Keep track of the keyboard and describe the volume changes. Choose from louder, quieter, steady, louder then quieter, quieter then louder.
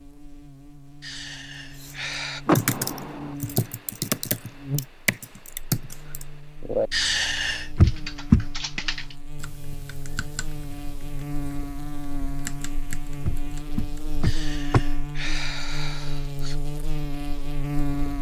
quieter then louder.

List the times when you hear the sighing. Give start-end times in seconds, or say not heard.
1.0-2.5, 6.9-7.7, 14.2-16.6.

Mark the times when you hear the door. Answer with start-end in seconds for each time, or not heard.
2.5-3.4, 7.8-8.8, 13.2-14.8.